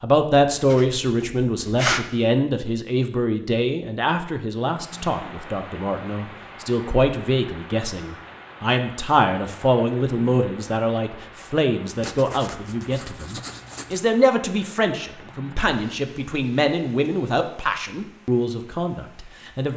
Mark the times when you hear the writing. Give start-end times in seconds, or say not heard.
0.5-2.1, 12.0-14.0.